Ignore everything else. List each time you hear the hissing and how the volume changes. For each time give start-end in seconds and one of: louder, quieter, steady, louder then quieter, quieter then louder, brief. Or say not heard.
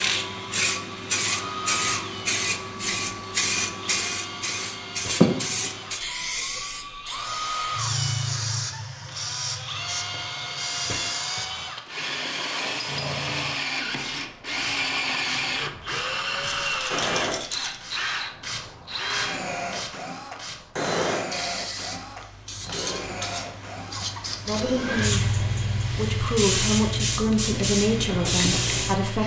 0.0-29.2 quieter then louder.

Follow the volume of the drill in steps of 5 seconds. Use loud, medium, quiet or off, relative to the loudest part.
medium, medium, loud, loud, medium, medium.